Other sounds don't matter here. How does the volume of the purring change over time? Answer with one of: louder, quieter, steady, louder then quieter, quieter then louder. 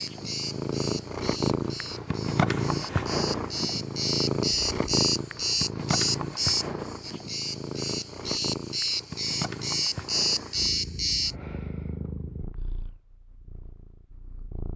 quieter.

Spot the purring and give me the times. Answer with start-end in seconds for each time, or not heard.
0.0-14.7.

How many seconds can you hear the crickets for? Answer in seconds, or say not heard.
11 s.